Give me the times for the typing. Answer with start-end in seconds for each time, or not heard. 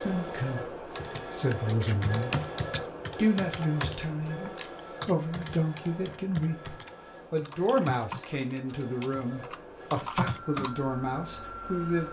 0.9-10.7.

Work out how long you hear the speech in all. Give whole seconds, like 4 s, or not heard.
11 s.